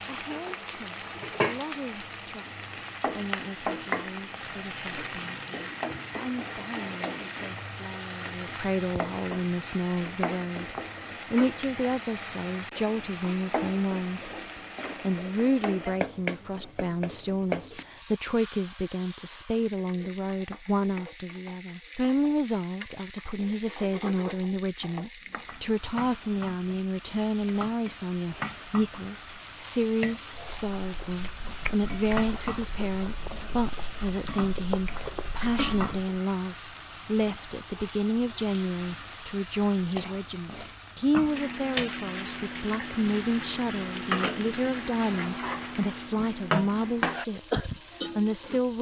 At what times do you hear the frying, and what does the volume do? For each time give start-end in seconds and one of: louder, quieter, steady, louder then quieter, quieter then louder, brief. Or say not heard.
0.0-48.7 quieter then louder.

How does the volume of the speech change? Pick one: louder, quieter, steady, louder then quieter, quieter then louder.
louder.